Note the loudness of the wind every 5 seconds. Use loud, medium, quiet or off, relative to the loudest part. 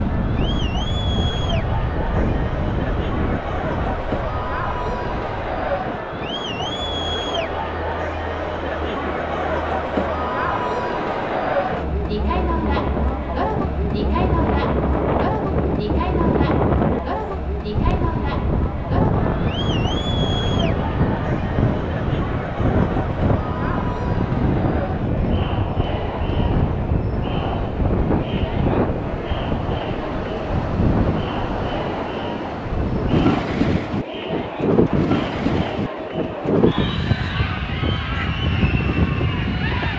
medium, quiet, medium, loud, loud, loud, loud, loud.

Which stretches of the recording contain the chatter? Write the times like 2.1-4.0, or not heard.
0.0-39.9.